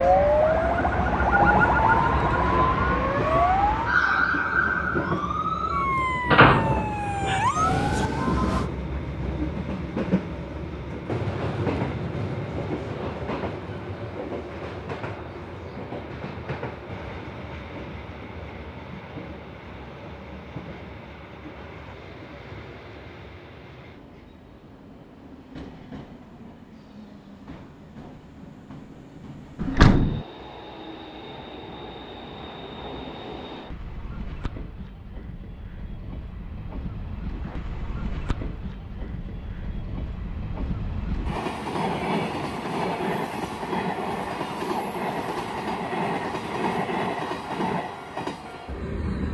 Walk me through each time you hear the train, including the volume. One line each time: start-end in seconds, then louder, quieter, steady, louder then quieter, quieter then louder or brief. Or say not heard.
0.0-49.3 quieter then louder.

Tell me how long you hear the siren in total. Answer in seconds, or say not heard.
9 s.